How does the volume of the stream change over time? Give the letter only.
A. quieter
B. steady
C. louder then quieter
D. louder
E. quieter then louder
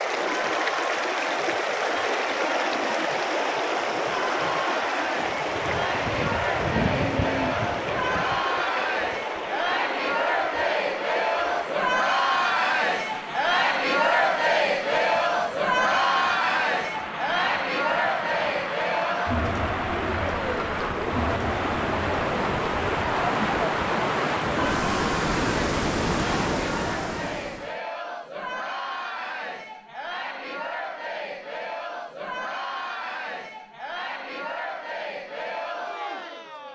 E.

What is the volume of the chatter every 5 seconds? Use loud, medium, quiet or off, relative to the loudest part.
medium, medium, loud, loud, medium, medium, medium, medium.